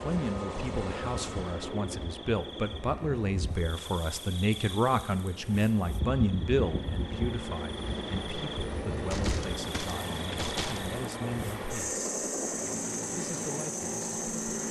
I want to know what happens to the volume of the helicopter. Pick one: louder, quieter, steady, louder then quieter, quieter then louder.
quieter then louder.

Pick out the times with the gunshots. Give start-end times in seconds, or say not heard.
9.1-10.9.